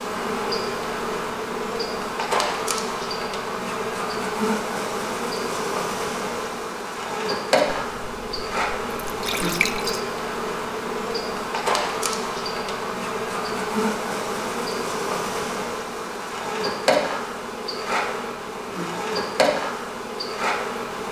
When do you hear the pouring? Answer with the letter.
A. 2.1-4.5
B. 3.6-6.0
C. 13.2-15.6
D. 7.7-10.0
D.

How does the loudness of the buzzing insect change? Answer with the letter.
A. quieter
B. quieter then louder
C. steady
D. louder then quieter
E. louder
C.